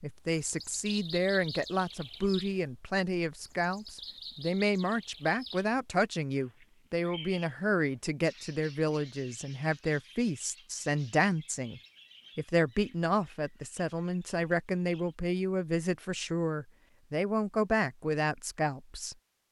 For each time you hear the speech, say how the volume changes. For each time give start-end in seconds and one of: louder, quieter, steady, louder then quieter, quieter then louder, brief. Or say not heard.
0.0-19.1 steady.